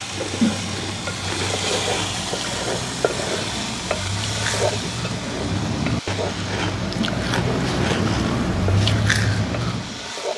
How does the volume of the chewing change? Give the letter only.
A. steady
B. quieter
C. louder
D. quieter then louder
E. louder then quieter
C.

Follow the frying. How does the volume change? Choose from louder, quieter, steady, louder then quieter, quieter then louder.
quieter.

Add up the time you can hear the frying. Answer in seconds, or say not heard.
10 s.